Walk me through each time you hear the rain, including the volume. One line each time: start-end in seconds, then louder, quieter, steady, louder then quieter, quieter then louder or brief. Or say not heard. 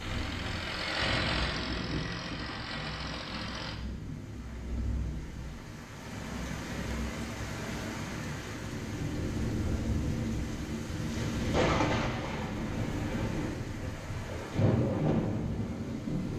0.0-16.3 louder.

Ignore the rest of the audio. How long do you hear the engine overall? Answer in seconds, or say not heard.
4 s.